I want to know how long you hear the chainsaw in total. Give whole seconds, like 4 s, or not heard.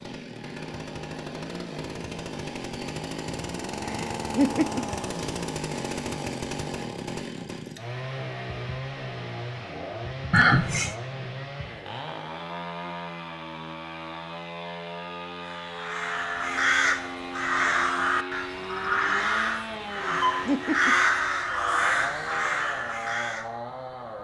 24 s.